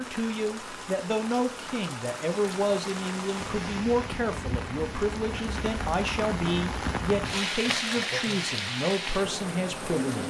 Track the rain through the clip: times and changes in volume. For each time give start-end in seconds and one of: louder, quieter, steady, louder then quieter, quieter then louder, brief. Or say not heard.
0.0-10.2 louder.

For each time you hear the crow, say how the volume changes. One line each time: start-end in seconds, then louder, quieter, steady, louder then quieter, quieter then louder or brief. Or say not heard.
not heard.